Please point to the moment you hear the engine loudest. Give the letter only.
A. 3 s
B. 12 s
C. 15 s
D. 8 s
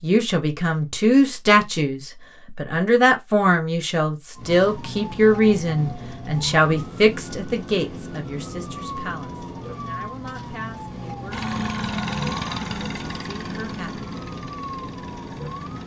B.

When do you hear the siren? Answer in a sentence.
You can hear the siren from 4.3 to 15.8 s.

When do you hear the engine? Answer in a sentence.
You can hear the engine from 11.3 to 15.8 s.